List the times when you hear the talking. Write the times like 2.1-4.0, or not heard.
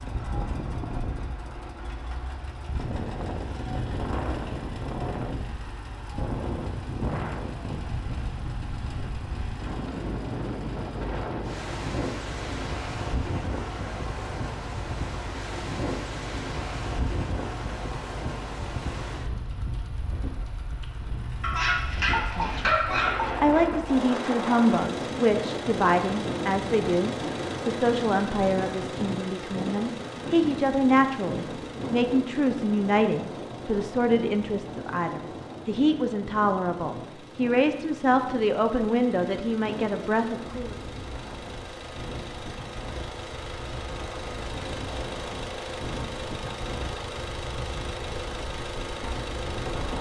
22.0-22.8, 23.4-40.8.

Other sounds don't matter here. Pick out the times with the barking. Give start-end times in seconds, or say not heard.
21.4-23.3.